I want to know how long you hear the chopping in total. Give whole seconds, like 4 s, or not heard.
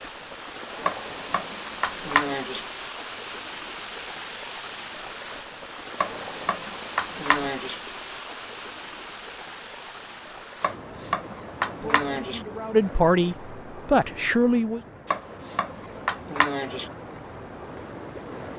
7 s.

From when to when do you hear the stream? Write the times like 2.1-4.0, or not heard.
0.0-18.5.